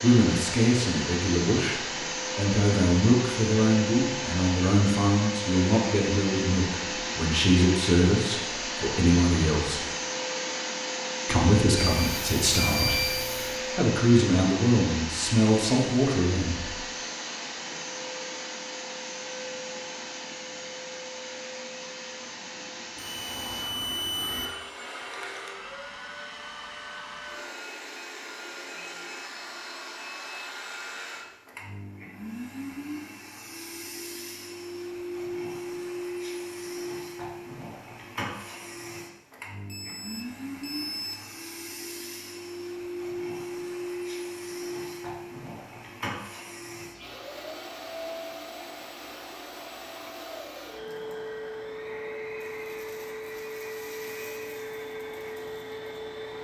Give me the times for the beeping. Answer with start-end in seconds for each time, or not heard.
11.8-13.6, 22.9-24.5, 39.6-41.4.